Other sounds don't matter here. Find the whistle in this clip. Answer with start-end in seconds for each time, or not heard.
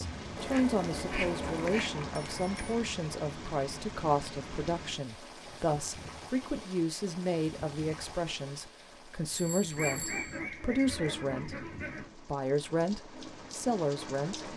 not heard.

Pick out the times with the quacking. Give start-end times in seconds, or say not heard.
0.3-1.9, 9.8-12.2.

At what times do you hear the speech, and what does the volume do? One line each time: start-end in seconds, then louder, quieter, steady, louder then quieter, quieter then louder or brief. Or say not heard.
0.0-14.5 steady.